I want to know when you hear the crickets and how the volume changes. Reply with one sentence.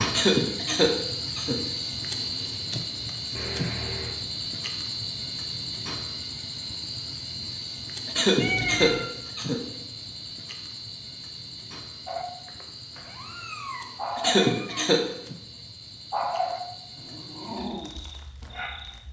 The crickets can be heard from 0.0 to 19.0 s, getting quieter.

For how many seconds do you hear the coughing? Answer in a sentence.
The coughing can be heard for 4 seconds in total.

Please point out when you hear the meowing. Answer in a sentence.
The meowing can be heard from 3.4 to 4.2 s, from 8.3 to 9.1 s and from 12.9 to 14.9 s.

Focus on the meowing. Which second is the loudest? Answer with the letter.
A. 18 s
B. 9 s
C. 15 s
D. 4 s
B.